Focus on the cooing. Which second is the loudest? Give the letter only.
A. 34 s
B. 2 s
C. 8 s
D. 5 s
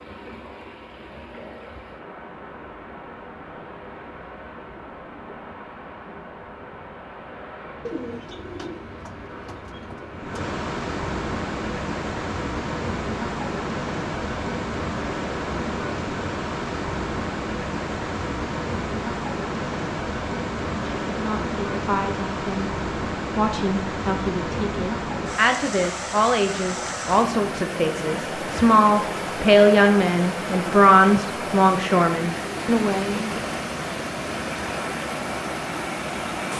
C.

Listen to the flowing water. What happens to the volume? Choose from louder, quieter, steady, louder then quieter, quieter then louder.
louder.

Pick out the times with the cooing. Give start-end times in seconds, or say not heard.
7.8-10.2.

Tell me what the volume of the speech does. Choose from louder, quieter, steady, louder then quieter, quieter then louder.
louder.